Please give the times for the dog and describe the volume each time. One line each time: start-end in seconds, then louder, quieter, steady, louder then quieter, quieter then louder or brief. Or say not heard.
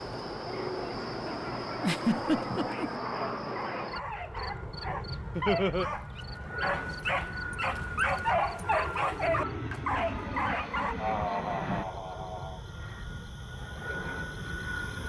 0.5-10.9 louder.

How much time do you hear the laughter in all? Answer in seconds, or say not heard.
3 s.